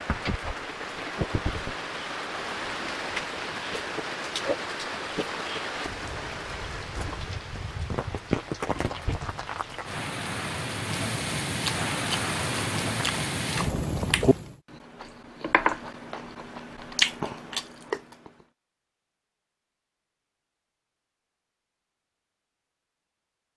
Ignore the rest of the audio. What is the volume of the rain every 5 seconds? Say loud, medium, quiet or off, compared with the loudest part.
loud, loud, loud, off, off.